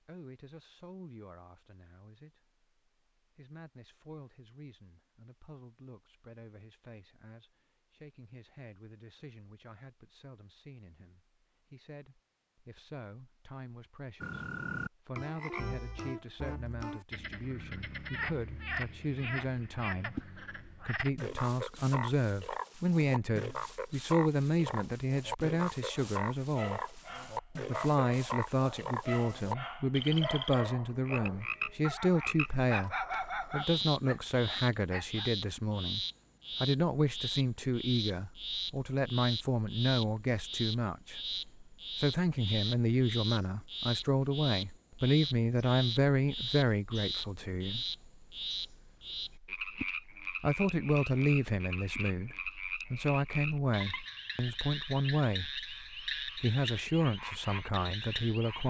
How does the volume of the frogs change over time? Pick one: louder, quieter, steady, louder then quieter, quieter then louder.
steady.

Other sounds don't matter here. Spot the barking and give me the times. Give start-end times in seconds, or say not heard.
25.9-35.3.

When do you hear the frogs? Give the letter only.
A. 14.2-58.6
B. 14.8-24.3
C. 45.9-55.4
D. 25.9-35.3
A.